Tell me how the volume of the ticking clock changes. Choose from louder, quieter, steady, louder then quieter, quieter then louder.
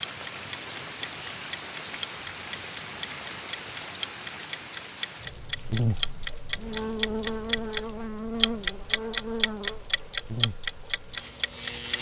louder.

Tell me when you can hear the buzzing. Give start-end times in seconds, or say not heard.
5.5-11.9.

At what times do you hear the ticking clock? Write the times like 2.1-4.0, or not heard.
0.0-7.8, 8.4-11.9.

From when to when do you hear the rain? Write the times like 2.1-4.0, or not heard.
0.0-11.9.